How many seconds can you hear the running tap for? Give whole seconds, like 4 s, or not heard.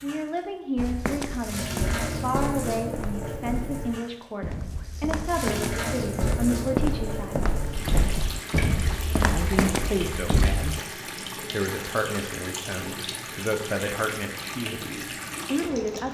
16 s.